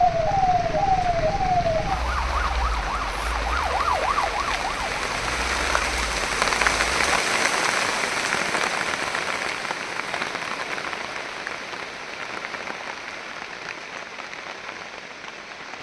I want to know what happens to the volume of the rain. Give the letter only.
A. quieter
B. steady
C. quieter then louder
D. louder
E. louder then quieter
E.